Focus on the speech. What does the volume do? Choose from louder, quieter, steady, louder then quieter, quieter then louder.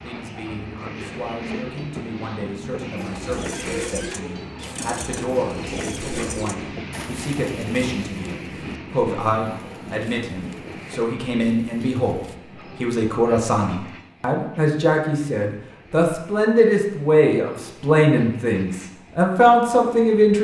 louder.